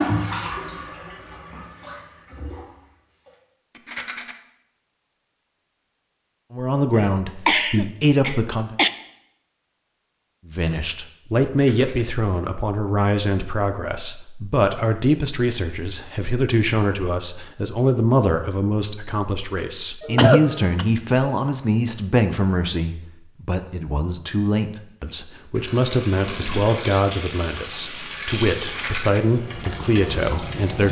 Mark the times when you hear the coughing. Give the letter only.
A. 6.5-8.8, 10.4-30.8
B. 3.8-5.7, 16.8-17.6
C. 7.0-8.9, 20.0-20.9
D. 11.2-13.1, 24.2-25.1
C.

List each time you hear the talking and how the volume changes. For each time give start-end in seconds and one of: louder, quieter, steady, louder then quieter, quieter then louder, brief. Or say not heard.
6.5-8.8 brief
10.4-30.8 steady.